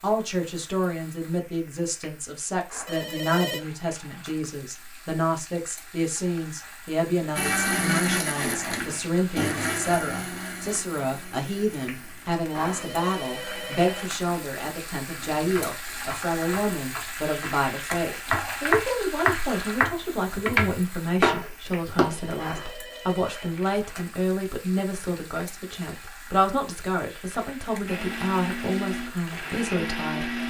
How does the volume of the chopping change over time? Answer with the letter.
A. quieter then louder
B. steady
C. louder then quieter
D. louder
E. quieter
D.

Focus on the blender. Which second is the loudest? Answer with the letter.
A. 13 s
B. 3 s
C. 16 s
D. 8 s
D.